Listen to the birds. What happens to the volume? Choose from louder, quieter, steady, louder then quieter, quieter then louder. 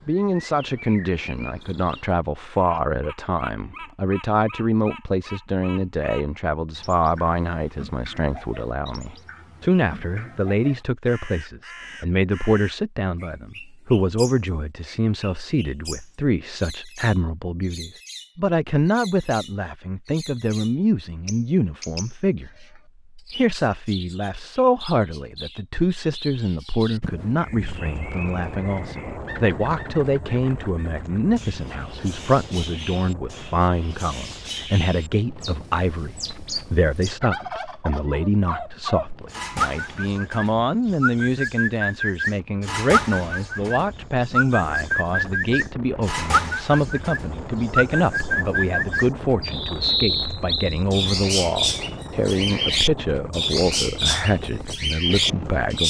louder.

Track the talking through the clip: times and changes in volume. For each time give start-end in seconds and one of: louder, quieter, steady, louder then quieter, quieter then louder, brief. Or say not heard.
0.1-55.8 steady.